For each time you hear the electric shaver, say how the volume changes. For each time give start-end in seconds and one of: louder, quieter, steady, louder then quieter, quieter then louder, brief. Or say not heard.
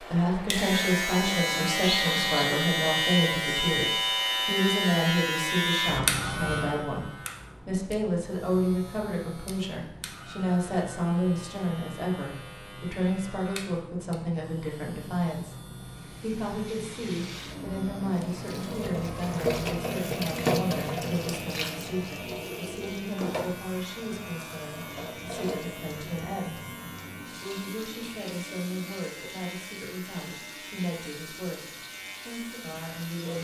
0.0-33.3 quieter.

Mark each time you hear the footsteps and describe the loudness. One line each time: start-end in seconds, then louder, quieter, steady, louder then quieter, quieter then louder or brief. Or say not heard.
not heard.